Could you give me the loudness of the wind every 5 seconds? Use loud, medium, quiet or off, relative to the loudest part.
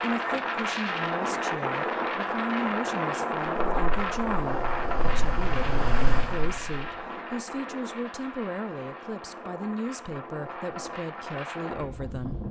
loud, medium, medium.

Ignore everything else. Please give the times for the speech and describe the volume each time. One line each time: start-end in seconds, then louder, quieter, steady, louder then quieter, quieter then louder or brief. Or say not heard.
0.0-12.4 steady.